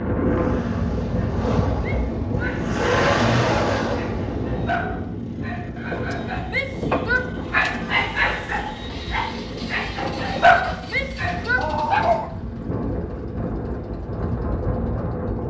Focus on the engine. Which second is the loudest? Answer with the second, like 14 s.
3 s.